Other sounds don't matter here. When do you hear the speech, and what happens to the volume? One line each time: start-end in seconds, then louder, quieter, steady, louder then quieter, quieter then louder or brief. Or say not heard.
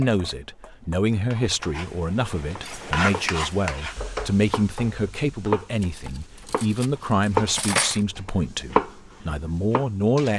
0.0-10.3 steady.